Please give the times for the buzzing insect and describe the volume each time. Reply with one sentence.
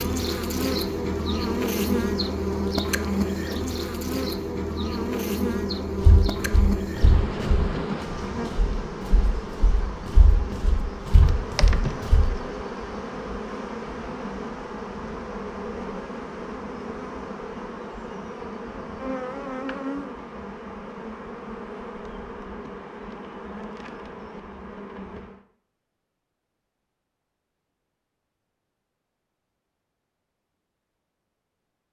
The buzzing insect can be heard from 0.0 to 25.4 s, getting quieter.